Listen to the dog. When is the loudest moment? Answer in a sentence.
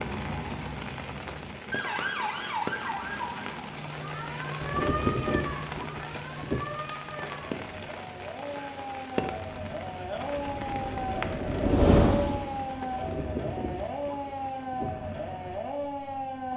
The volume of the dog peaks at 5 seconds.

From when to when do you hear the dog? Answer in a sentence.
You can hear the dog from 4.6 to 6.6 s and from 12.9 to 14.9 s.